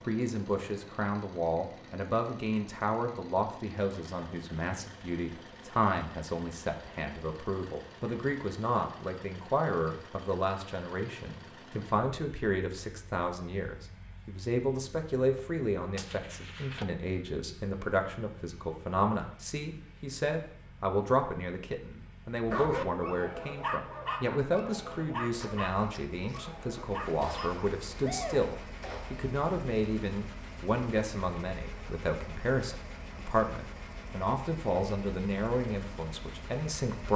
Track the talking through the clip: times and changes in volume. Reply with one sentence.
You can hear the talking from 0.0 to 37.1 s, at a steady volume.